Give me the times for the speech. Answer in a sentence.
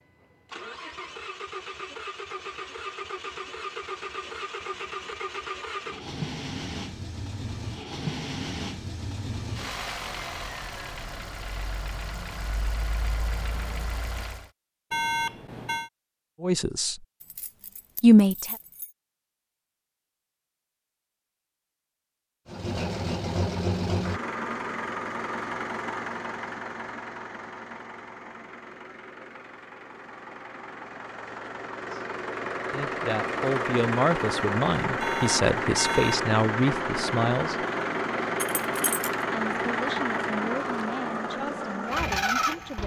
The speech can be heard from 16.4 to 17.0 s, from 18.0 to 18.6 s, from 32.7 to 37.6 s and from 39.3 to 42.8 s.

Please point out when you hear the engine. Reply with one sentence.
You can hear the engine from 0.0 to 14.5 s and from 22.4 to 42.8 s.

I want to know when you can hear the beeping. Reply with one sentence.
The beeping can be heard from 14.9 to 15.9 s and from 35.0 to 36.2 s.